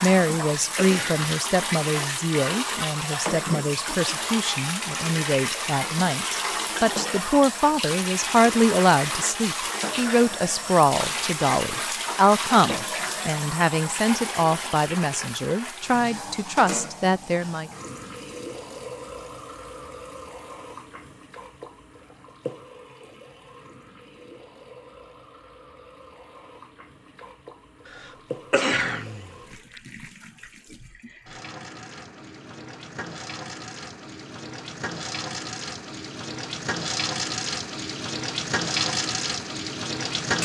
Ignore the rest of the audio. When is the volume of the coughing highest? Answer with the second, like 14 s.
29 s.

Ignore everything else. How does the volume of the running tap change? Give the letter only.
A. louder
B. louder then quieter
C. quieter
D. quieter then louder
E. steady
D.